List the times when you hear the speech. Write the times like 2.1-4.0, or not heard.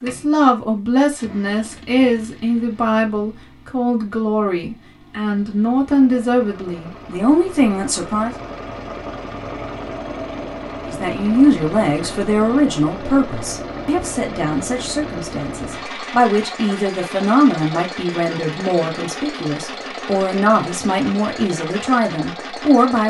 0.0-8.3, 10.8-23.0.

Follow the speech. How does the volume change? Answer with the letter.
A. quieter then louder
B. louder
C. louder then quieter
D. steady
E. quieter
D.